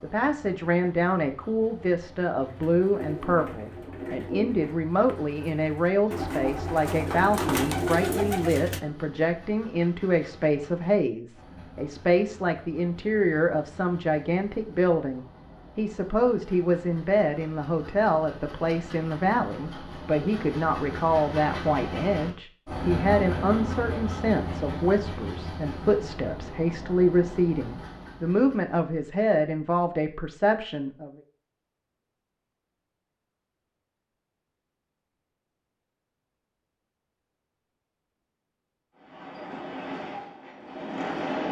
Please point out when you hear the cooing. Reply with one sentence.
The cooing can be heard from 2.5 to 8.8 s.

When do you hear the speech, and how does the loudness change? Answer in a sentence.
You can hear the speech from 0.0 to 31.1 s, at a steady volume.